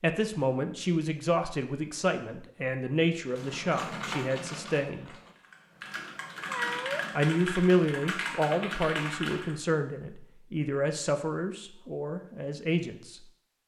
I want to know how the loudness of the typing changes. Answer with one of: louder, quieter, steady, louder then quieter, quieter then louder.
quieter then louder.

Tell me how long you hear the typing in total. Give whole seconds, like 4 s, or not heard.
6 s.